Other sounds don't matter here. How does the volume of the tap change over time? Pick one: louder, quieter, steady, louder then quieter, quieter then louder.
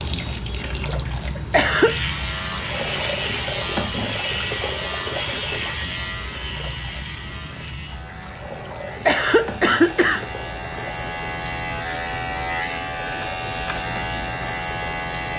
quieter.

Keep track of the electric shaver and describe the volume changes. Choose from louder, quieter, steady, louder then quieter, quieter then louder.
quieter then louder.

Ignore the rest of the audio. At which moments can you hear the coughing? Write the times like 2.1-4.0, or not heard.
1.4-1.9, 8.8-10.2.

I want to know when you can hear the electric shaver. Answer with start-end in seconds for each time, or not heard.
1.8-15.3.